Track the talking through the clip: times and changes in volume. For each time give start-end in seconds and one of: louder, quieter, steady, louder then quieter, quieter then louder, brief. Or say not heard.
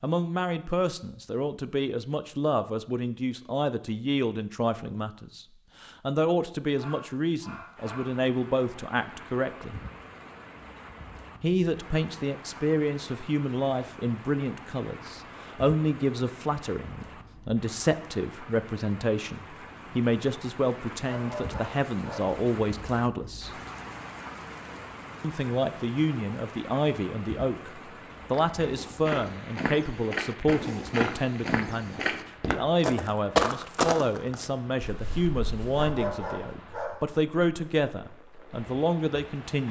0.0-9.8 steady
11.4-23.5 steady
25.2-39.6 steady.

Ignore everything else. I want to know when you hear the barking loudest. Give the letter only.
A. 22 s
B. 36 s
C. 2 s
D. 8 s
B.